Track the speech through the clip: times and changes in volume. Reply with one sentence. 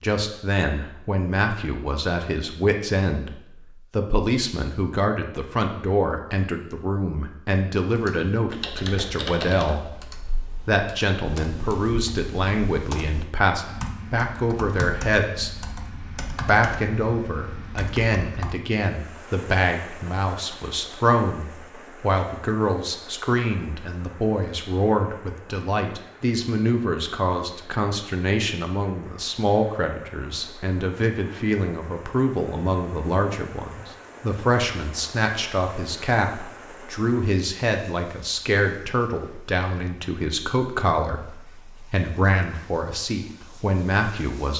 You can hear the speech from 0.0 to 15.6 s, at a steady volume; and from 16.4 to 44.5 s, at a steady volume.